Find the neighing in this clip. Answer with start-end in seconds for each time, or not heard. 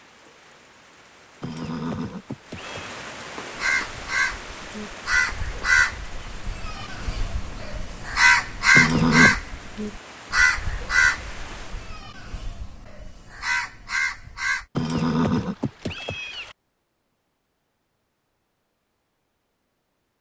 1.4-2.9, 8.8-9.3, 14.8-16.6.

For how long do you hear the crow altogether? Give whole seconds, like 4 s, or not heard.
11 s.